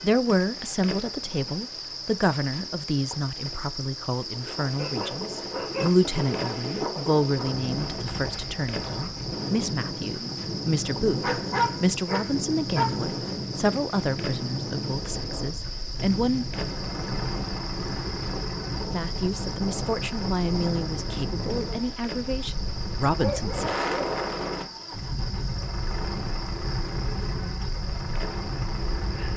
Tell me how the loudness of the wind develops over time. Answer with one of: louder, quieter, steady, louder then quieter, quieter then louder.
steady.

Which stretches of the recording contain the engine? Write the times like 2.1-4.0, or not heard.
16.5-29.3.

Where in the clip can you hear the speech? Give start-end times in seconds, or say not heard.
0.0-16.4, 18.9-23.8.